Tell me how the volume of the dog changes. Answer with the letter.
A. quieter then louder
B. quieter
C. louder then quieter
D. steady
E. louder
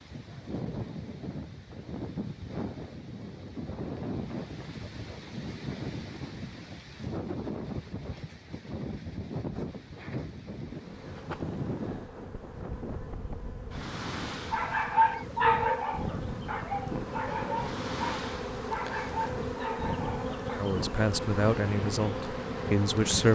B.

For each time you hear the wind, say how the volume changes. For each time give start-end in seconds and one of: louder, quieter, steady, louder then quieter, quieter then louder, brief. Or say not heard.
0.0-23.2 steady.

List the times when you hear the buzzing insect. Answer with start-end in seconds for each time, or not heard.
10.7-23.2.